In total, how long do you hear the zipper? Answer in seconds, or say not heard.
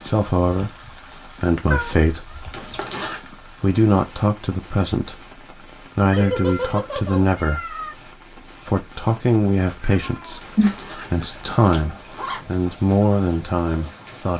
3 s.